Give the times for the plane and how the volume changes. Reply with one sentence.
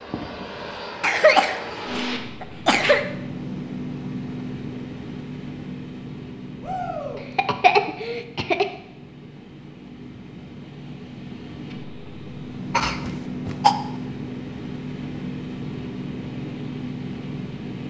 You can hear the plane from 0.0 to 17.8 s, getting quieter then louder.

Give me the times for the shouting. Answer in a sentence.
The shouting can be heard from 6.6 to 7.2 s.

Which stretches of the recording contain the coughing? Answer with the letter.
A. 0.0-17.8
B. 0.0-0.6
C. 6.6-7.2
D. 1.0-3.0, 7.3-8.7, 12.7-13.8
D.